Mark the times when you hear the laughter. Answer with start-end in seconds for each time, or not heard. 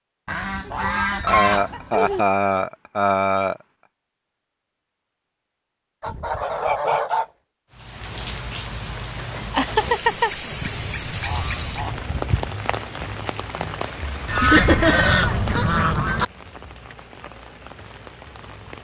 1.2-3.5, 9.5-10.3, 14.4-15.1.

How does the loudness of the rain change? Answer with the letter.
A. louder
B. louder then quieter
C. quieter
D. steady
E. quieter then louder
C.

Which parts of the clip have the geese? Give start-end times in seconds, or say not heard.
0.2-2.2, 6.0-7.2, 10.5-12.5, 14.2-16.2.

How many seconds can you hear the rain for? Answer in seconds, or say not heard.
11 s.